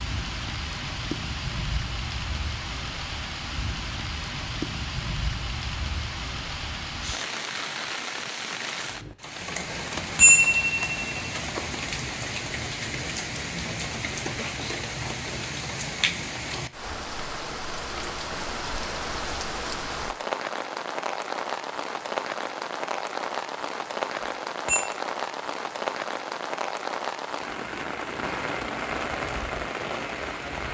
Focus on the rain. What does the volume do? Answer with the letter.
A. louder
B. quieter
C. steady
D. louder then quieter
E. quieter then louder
C.